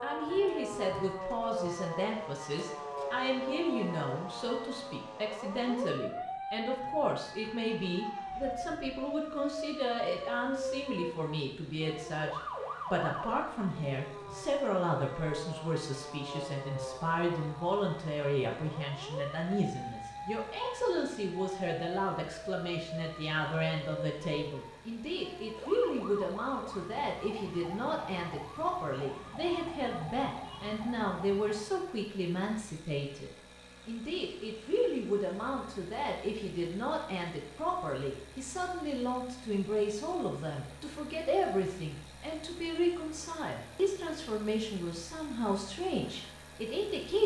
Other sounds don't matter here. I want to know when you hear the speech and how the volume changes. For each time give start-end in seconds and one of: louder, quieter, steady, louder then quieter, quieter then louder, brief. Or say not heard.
0.0-47.2 steady.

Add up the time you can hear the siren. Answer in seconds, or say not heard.
32 s.